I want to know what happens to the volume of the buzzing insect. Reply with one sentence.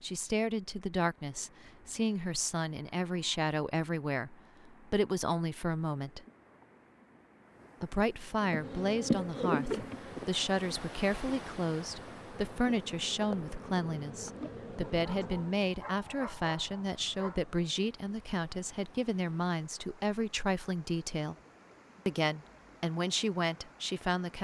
The loudness of the buzzing insect goes down, then up.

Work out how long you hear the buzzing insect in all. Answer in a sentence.
You can hear the buzzing insect for 7 seconds altogether.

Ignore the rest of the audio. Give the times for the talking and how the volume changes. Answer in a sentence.
The talking can be heard from 0.0 to 6.2 s, at a steady volume; from 7.8 to 21.4 s, at a steady volume; and briefly from 22.1 to 24.3 s.